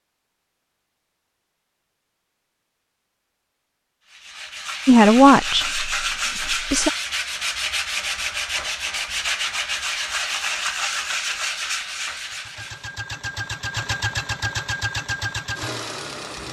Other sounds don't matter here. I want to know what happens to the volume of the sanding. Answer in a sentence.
The loudness of the sanding stays about the same.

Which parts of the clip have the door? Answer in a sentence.
The door can't be heard in this clip.